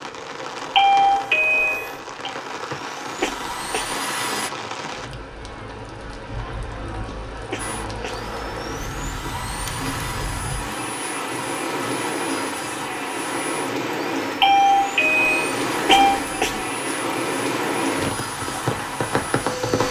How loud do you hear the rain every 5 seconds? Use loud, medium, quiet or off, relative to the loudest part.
medium, medium, loud, loud.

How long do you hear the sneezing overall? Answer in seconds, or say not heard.
2 s.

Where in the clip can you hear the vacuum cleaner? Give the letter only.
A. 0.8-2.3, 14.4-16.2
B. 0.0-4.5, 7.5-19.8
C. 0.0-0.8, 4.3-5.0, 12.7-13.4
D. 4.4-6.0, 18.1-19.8
B.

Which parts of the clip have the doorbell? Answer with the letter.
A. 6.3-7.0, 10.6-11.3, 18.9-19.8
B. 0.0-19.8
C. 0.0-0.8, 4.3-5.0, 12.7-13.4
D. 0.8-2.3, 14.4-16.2
D.